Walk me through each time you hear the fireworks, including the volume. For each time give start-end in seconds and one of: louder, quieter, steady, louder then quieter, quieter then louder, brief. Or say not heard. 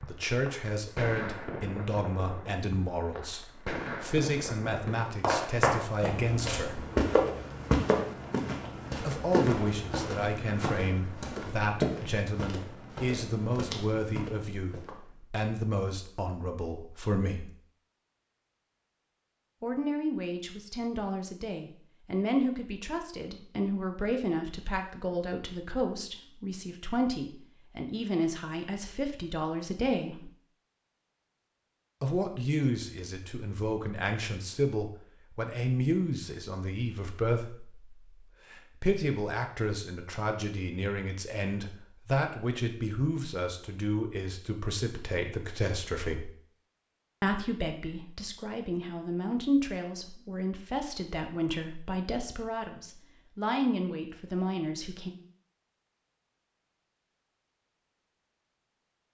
0.0-5.2 quieter then louder.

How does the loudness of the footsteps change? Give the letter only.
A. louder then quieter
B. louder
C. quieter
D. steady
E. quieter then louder
C.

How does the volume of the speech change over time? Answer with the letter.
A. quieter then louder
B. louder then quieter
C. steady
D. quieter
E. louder
C.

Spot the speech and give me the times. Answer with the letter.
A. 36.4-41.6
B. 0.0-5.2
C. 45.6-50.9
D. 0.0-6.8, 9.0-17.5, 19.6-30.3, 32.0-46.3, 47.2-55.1
D.